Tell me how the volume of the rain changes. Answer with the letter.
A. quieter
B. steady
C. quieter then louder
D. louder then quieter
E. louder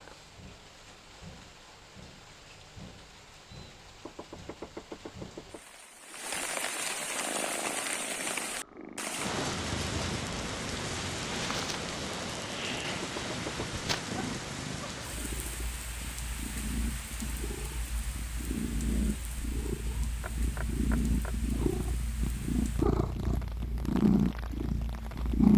D.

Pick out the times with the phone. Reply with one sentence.
You can't hear the phone here.